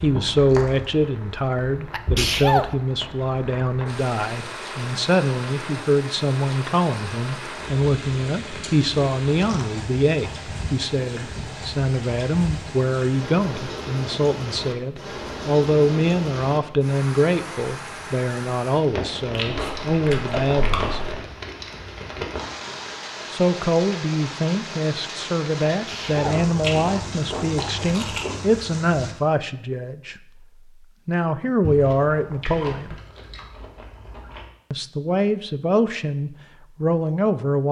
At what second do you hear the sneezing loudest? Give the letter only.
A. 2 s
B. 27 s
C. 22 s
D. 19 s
A.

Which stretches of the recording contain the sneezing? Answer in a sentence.
The sneezing can be heard from 1.9 to 2.8 s and from 25.7 to 26.4 s.